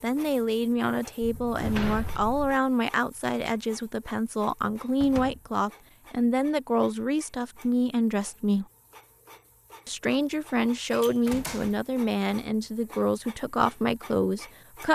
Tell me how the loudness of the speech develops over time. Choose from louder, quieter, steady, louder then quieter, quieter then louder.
steady.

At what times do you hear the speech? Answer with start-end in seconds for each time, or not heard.
0.0-8.7, 9.8-14.8.